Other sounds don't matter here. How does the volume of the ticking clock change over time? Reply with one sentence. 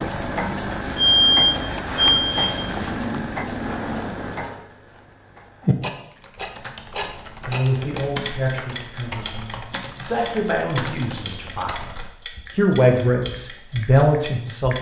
The volume of the ticking clock goes down.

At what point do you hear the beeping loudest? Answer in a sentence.
The volume of the beeping peaks at 1 second.